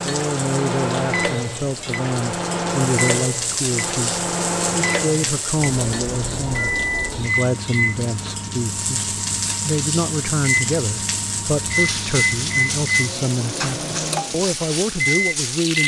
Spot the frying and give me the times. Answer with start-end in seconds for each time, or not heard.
0.0-15.8.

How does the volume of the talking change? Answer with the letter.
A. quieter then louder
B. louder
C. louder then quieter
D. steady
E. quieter
D.